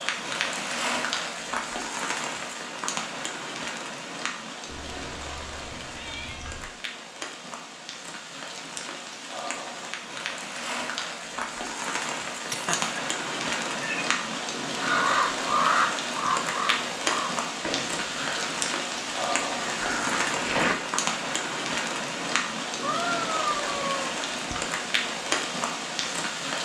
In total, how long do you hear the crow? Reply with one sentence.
You can hear the crow for 6 seconds altogether.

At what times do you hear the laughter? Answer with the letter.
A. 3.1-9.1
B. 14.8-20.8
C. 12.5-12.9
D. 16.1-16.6
C.